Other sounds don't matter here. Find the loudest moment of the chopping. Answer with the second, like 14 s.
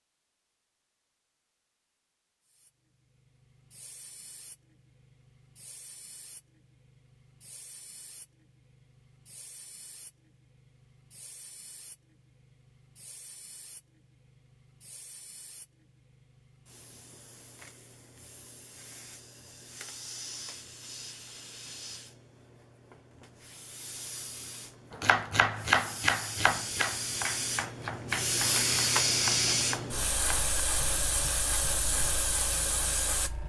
26 s.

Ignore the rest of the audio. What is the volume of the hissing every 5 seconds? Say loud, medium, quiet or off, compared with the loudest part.
quiet, quiet, quiet, quiet, quiet, loud, loud.